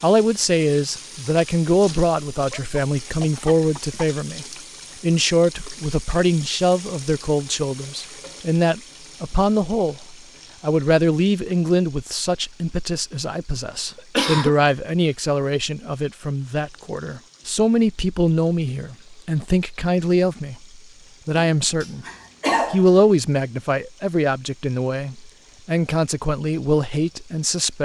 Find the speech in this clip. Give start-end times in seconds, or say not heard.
0.0-22.1, 22.7-27.7.